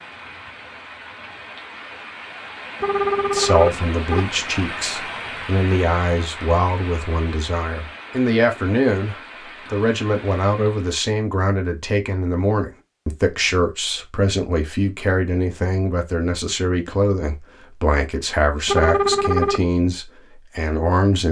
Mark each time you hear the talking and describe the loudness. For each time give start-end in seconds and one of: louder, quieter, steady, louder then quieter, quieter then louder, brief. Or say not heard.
3.3-21.2 steady.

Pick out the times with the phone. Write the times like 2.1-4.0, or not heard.
2.8-4.3, 18.6-19.6.